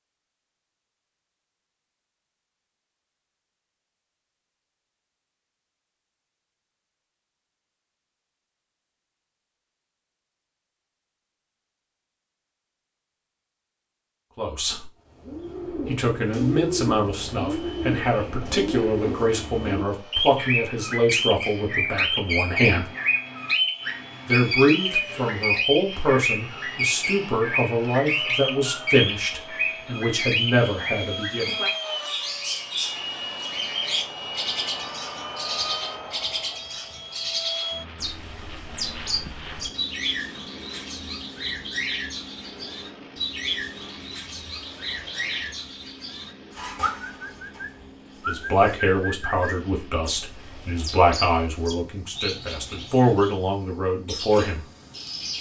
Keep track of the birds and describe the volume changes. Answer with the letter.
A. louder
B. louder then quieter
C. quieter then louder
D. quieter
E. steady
D.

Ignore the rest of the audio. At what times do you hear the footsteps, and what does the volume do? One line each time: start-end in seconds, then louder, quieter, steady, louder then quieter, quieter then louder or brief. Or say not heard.
not heard.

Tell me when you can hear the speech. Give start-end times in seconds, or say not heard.
14.3-14.8, 15.8-22.9, 24.2-31.5, 48.2-54.6.